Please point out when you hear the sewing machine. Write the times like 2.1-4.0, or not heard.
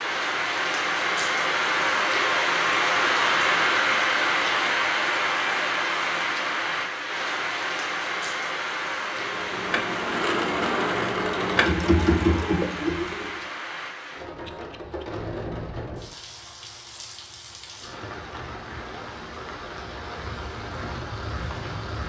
9.1-13.4.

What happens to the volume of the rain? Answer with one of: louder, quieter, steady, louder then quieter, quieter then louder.
quieter.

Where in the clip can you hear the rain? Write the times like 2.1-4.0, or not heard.
0.0-22.0.